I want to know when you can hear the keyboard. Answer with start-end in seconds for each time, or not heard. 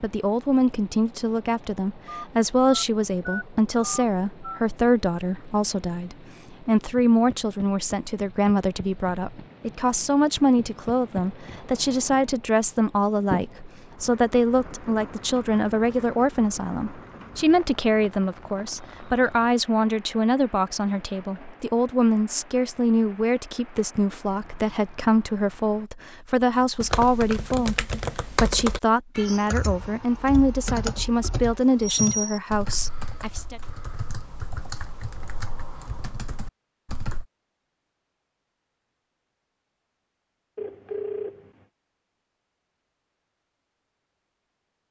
26.6-37.2.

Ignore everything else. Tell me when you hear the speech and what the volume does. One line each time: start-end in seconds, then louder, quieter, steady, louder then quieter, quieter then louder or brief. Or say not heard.
0.0-33.6 steady.